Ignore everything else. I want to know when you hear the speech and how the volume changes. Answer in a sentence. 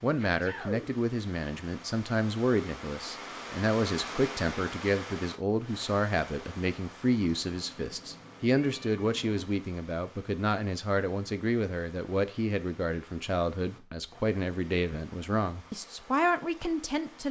You can hear the speech from 0.0 to 17.2 s, at a steady volume.